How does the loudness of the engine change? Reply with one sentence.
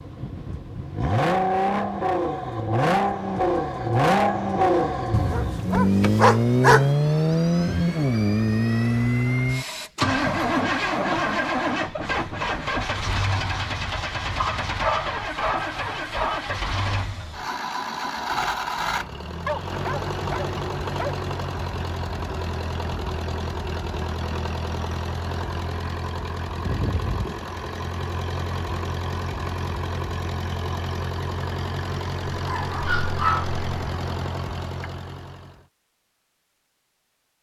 The loudness of the engine goes down.